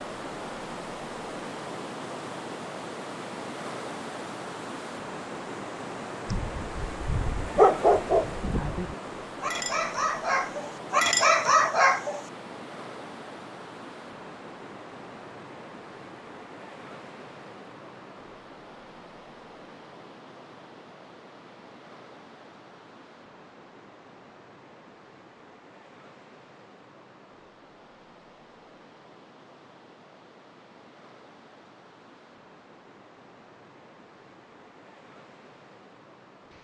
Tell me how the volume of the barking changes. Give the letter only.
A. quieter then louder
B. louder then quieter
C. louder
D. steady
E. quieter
A.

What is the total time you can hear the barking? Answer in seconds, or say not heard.
6 s.